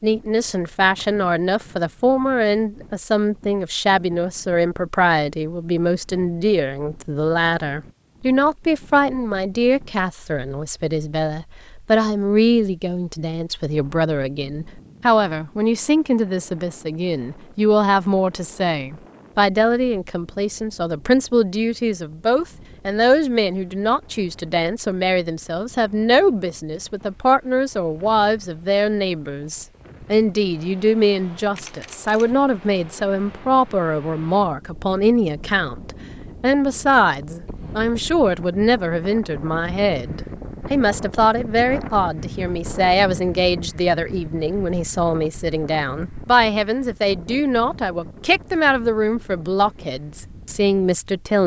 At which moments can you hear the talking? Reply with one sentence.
You can hear the talking from 0.0 to 51.4 s.